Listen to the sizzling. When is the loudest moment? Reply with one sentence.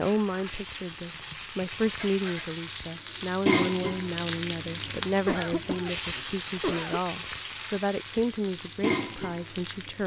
The volume of the sizzling peaks at 4 seconds.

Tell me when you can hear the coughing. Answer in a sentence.
You can hear the coughing from 1.1 to 2.6 s and from 5.2 to 7.0 s.